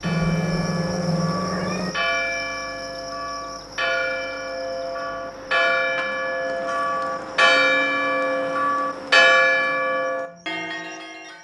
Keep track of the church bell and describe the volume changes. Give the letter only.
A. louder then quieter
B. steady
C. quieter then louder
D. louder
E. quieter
D.